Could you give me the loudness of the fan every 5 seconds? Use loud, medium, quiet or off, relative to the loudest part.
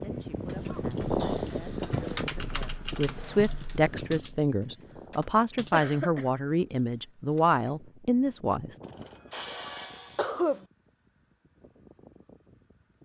loud, quiet, quiet.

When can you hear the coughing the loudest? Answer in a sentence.
The loudest moment of the coughing is at 10 seconds.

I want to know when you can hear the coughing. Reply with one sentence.
You can hear the coughing from 0.7 to 2.1 s, from 5.7 to 6.3 s and from 8.8 to 10.7 s.